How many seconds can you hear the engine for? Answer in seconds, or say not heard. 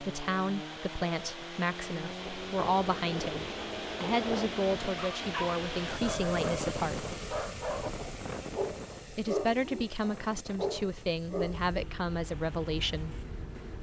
14 s.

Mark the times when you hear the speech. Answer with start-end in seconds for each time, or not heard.
0.0-7.2, 9.1-13.2.